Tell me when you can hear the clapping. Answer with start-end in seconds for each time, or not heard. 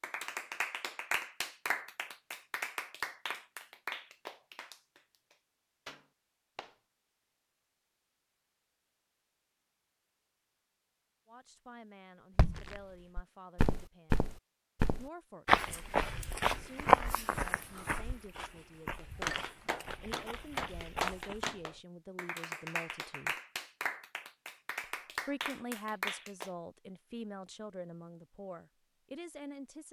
0.0-6.8, 18.9-26.5.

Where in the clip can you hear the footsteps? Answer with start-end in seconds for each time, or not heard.
12.3-21.4.